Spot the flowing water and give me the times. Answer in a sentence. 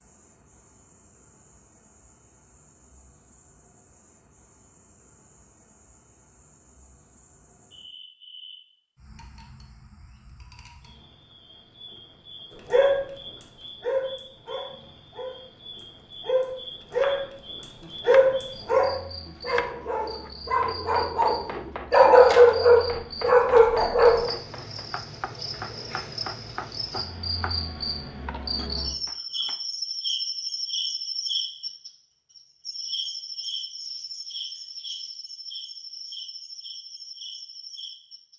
You can't hear the flowing water here.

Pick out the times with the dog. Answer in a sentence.
The dog can be heard from 12.7 to 15.4 s and from 16.2 to 24.2 s.